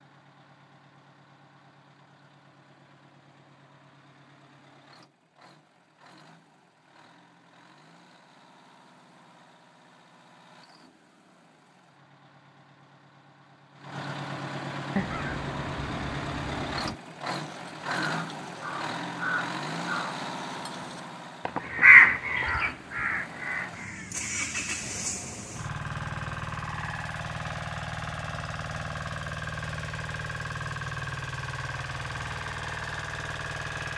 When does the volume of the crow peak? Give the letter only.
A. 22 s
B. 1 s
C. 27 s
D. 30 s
A.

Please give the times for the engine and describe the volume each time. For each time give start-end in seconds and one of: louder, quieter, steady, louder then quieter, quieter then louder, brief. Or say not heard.
0.0-33.9 louder.